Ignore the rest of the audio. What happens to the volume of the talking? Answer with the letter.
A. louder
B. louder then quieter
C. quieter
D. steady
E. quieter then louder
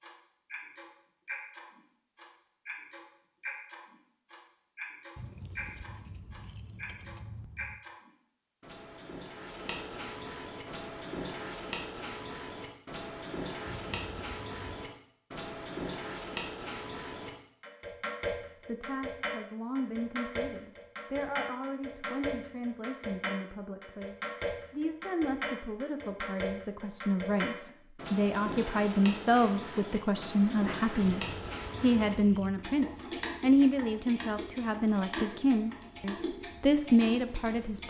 A.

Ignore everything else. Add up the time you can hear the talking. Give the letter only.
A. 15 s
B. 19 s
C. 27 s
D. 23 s
B.